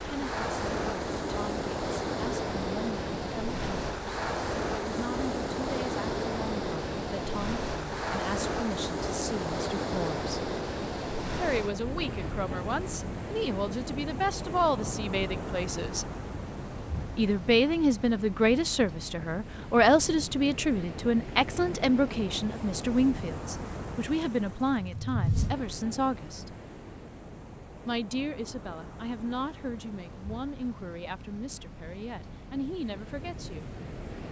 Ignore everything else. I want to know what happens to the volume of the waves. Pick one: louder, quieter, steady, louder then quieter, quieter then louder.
quieter.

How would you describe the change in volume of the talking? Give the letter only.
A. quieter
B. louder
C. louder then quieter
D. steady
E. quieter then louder
C.